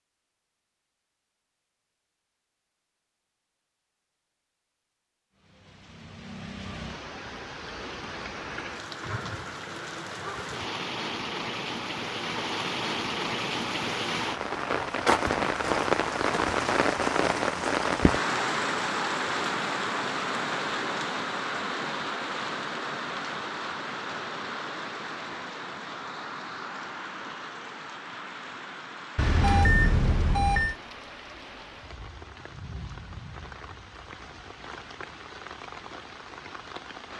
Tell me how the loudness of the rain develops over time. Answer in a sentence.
The volume of the rain goes up, then down.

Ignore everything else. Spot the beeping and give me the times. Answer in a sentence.
The beeping can be heard from 29.1 to 30.8 s.